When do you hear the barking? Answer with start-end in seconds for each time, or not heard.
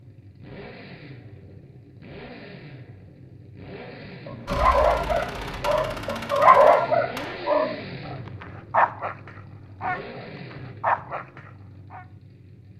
4.2-12.1.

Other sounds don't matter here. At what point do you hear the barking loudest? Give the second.
7 s.